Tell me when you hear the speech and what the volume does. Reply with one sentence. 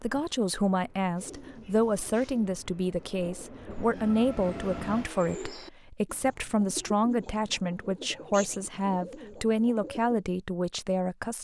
You can hear the speech from 0.0 to 11.3 s, at a steady volume.